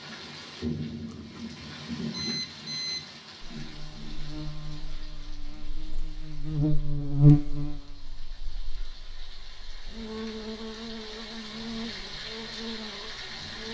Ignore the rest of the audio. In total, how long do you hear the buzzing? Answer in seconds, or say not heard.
10 s.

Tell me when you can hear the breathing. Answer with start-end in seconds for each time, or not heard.
not heard.